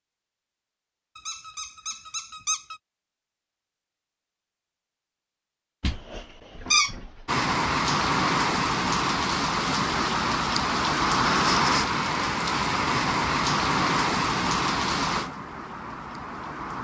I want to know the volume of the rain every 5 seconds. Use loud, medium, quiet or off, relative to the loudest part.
off, loud, loud, medium.